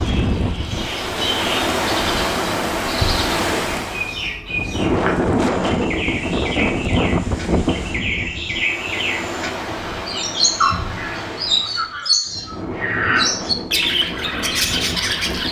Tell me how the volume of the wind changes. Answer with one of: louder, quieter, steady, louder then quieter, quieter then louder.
quieter.